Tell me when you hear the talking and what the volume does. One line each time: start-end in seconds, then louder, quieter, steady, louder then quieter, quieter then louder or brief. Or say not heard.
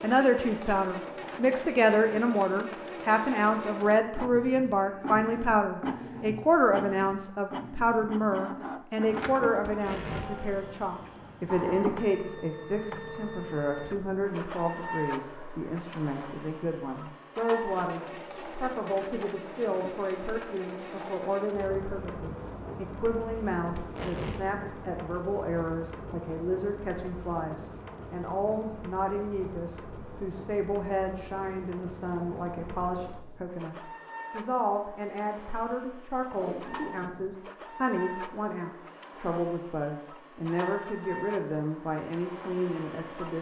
0.0-43.3 quieter.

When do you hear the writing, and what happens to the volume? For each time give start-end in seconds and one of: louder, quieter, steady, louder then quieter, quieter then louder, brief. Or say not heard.
not heard.